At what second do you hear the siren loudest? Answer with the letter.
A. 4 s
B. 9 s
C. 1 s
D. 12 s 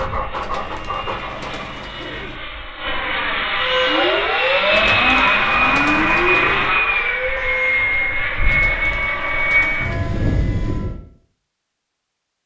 A.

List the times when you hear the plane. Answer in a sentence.
You can hear the plane from 0.0 to 11.0 s.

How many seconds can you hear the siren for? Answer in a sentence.
You can hear the siren for 6 seconds altogether.